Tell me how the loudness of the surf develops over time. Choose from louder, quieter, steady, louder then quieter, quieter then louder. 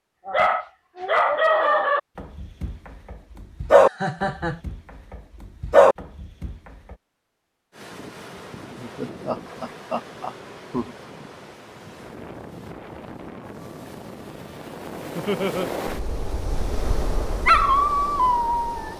louder.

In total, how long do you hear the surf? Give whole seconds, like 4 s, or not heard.
11 s.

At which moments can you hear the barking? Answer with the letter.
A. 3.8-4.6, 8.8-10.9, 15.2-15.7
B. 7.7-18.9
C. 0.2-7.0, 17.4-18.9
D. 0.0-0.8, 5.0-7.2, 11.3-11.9
C.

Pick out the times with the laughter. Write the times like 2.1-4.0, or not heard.
3.8-4.6, 8.8-10.9, 15.2-15.7.